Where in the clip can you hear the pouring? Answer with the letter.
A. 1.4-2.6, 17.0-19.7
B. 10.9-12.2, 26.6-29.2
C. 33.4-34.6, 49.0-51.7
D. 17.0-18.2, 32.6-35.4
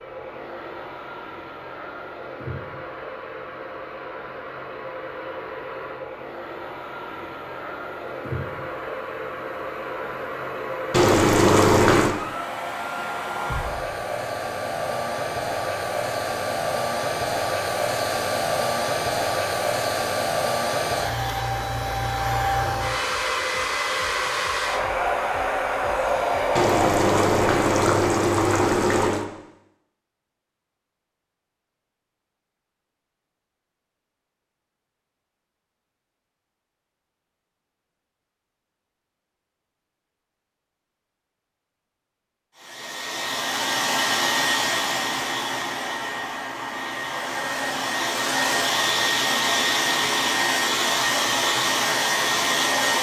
B.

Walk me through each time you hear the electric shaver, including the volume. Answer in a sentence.
The electric shaver can't be heard in this clip.